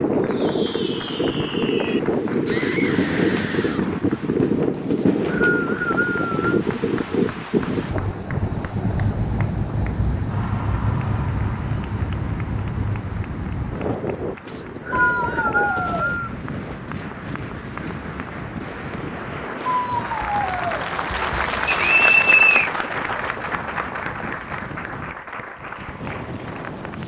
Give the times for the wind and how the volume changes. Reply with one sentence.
The wind can be heard from 0.0 to 27.0 s, getting quieter.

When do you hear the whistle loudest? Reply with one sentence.
The volume of the whistle peaks at 22 seconds.